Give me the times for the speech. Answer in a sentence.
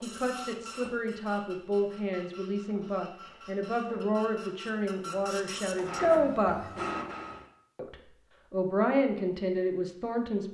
You can hear the speech from 0.0 to 6.6 s and from 7.8 to 10.4 s.